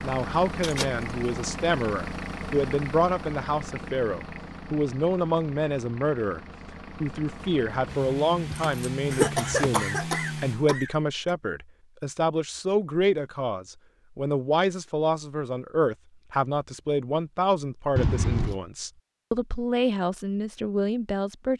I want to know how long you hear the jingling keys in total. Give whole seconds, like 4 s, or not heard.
3 s.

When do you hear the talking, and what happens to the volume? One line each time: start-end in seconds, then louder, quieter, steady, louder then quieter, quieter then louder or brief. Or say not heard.
0.0-6.4 steady
7.0-21.5 steady.